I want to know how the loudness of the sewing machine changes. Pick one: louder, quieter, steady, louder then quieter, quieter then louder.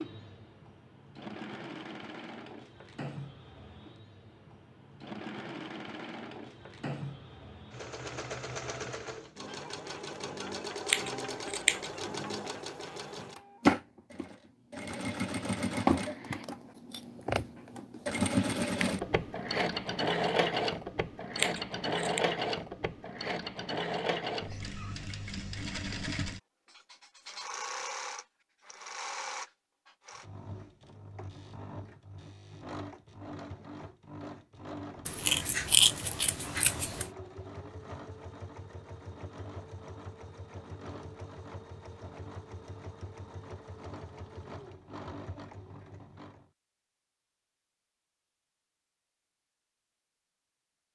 louder then quieter.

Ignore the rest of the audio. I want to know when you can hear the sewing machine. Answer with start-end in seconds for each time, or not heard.
0.0-46.5.